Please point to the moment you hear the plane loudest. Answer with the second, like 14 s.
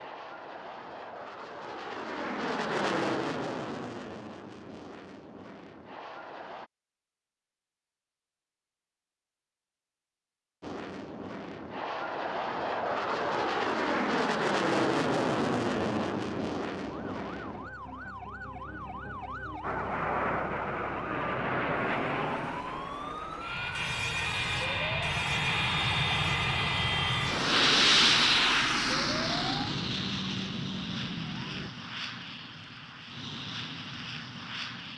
28 s.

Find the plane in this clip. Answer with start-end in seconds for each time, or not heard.
0.0-6.7, 10.6-18.1, 19.6-34.9.